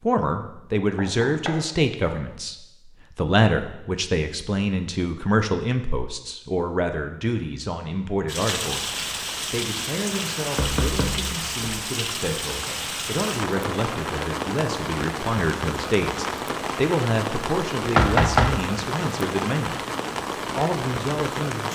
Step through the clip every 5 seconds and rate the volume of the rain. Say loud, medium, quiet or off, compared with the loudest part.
off, loud, loud, loud, loud.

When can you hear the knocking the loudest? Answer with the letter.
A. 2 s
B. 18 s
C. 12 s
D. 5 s
B.